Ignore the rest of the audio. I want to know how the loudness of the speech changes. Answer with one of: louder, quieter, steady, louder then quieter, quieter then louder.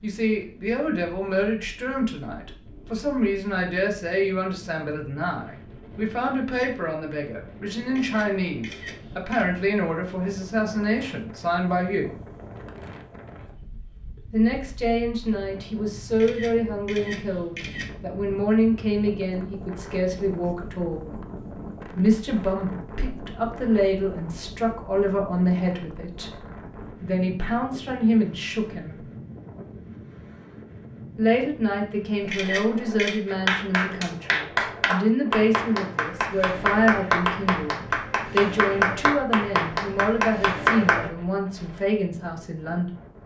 steady.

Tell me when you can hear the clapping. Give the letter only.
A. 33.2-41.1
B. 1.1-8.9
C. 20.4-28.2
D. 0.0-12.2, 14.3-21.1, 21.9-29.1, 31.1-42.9
A.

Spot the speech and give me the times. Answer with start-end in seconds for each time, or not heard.
0.0-12.2, 14.3-21.1, 21.9-29.1, 31.1-42.9.